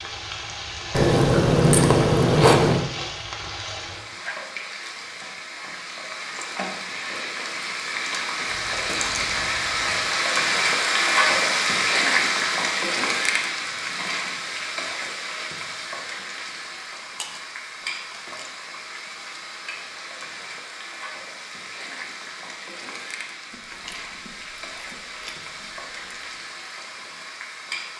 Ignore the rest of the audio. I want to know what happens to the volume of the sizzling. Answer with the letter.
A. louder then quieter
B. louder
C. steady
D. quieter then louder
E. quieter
A.